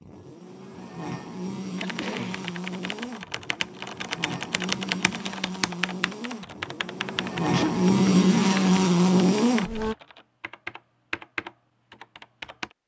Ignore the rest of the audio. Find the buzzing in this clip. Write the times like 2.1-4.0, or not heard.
0.0-9.9.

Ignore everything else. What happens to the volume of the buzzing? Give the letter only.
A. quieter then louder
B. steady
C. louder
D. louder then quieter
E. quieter
C.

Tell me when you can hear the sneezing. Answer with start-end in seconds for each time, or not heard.
1.8-2.5, 7.4-7.8.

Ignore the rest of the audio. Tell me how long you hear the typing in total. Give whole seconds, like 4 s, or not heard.
11 s.